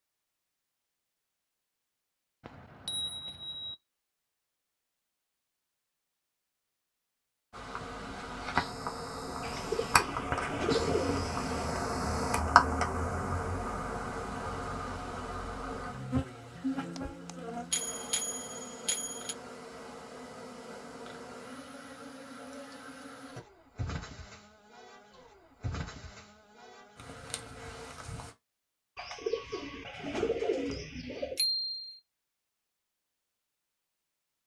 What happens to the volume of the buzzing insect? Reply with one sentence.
The volume of the buzzing insect goes down.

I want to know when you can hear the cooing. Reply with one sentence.
The cooing can be heard from 9.4 to 11.7 s and from 28.9 to 31.4 s.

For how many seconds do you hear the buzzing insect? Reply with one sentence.
The buzzing insect can be heard for 21 seconds in total.